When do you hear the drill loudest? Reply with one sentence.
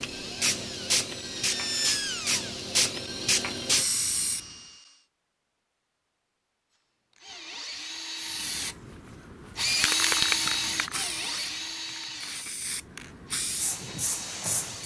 The volume of the drill peaks at 10 seconds.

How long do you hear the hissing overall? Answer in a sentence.
You can hear the hissing for 11 seconds altogether.